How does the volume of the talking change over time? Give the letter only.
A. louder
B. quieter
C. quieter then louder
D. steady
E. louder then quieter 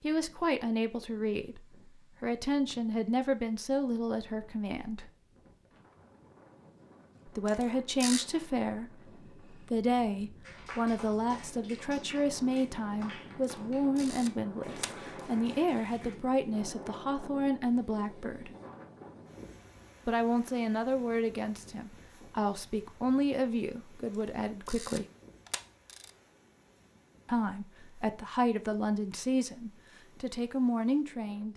D.